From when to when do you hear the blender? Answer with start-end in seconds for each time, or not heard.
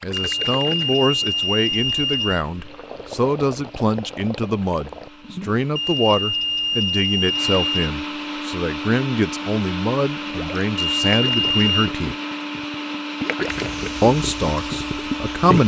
0.1-15.6.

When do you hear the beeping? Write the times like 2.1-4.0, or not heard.
0.1-2.5, 5.8-7.9, 10.8-11.9.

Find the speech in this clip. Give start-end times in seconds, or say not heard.
0.0-12.2, 14.0-15.6.